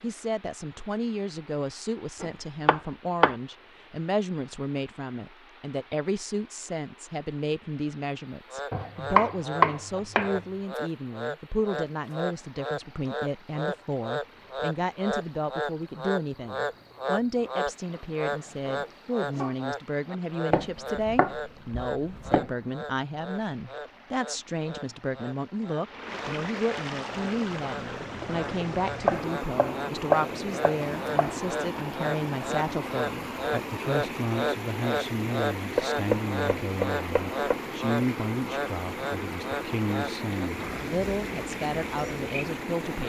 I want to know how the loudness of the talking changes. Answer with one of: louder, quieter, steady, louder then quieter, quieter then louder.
steady.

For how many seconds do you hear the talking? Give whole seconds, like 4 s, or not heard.
43 s.